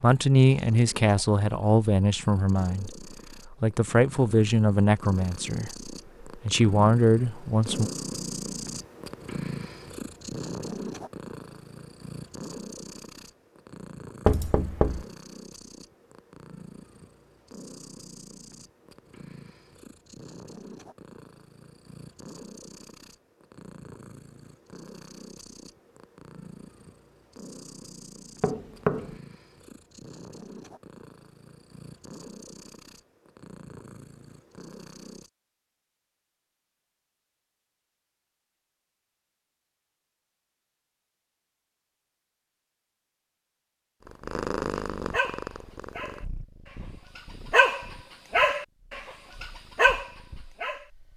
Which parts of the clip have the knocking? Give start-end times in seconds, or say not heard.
14.2-15.1, 28.4-29.1.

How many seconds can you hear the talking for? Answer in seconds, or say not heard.
8 s.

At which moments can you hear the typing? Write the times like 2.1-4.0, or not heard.
not heard.